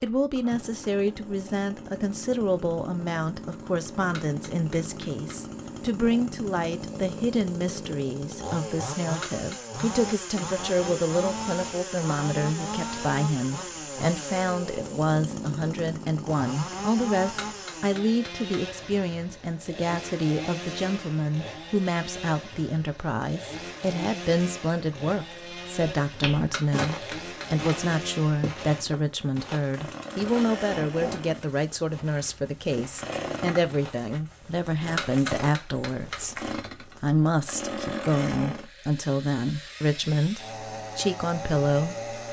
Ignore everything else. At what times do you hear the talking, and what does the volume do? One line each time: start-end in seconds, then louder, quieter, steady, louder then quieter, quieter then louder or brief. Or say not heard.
0.0-42.0 steady.